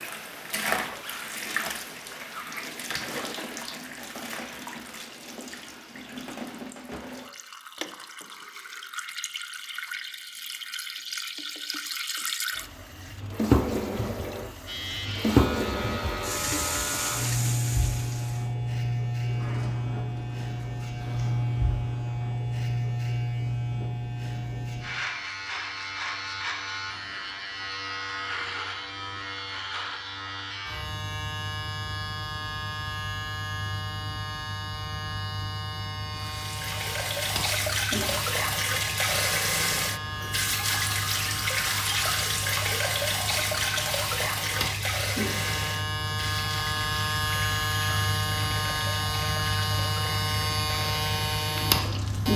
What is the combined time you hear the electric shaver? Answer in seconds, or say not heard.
38 s.